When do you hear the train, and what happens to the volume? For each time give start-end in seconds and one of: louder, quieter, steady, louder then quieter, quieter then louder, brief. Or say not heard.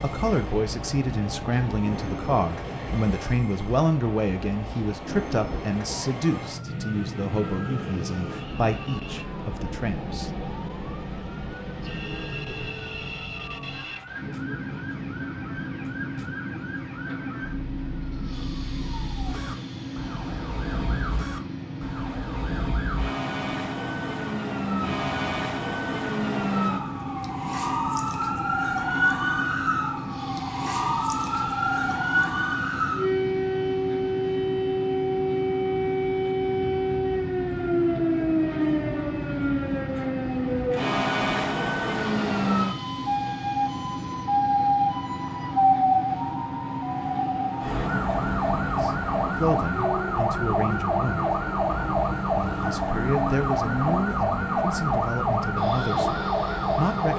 0.0-57.1 steady.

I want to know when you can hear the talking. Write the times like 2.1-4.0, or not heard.
0.0-10.3, 48.8-51.2, 52.4-57.1.